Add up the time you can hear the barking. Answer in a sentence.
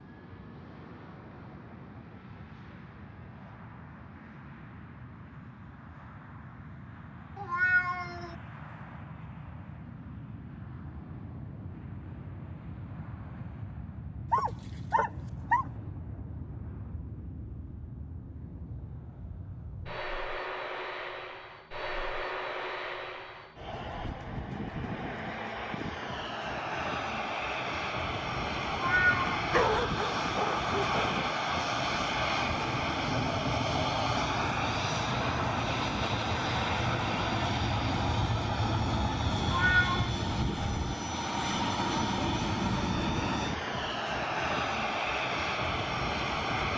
You can hear the barking for 3 seconds altogether.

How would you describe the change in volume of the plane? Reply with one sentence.
The volume of the plane goes up.